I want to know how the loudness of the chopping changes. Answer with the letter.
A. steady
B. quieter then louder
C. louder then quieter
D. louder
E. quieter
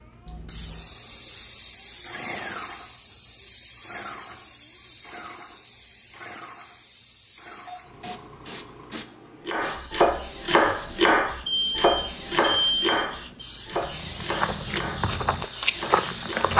E.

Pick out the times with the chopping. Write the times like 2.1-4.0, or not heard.
9.4-16.5.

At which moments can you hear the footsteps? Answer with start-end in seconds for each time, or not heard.
13.7-16.5.